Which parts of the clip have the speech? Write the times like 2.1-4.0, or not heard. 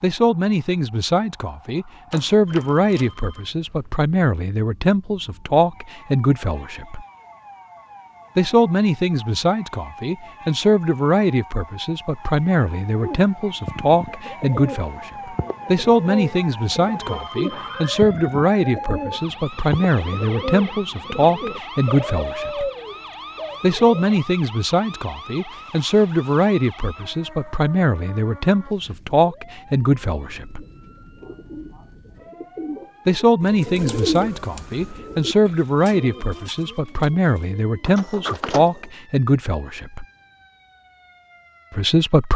0.0-7.0, 8.3-22.7, 23.6-30.6, 33.0-40.0, 41.7-42.3.